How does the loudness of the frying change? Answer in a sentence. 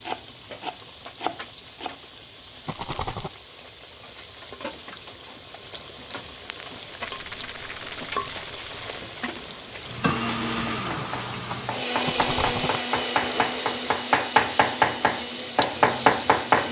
The volume of the frying goes up.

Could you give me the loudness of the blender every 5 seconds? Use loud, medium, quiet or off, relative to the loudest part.
off, off, loud, medium.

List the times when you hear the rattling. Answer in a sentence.
You can hear the rattling from 2.6 to 3.4 s, from 6.8 to 8.9 s and from 12.1 to 12.8 s.